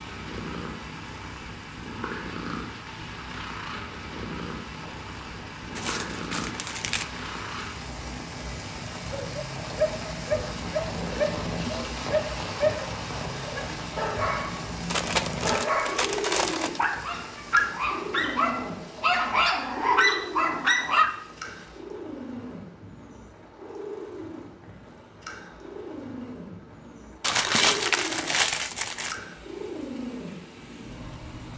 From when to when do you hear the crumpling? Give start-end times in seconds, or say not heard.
5.8-7.2, 14.8-16.9, 27.2-29.1.